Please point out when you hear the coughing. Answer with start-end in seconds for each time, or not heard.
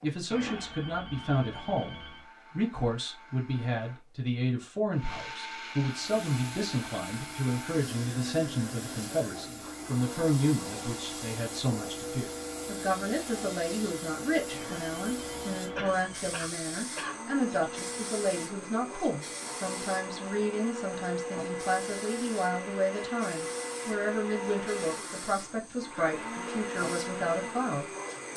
15.8-17.2.